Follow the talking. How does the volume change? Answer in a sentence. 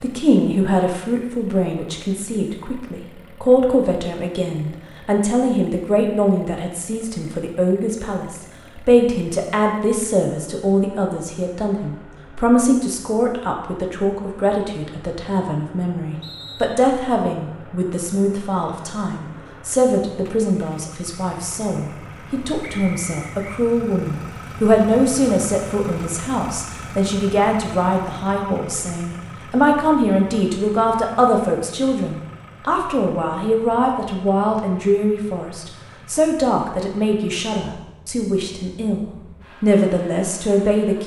The loudness of the talking stays about the same.